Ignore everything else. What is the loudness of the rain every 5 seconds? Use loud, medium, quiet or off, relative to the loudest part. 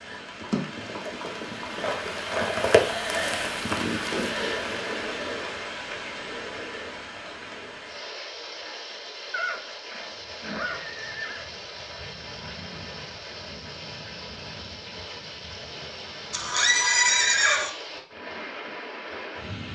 loud, medium, medium, medium.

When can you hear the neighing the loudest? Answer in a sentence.
The volume of the neighing peaks at 17 seconds.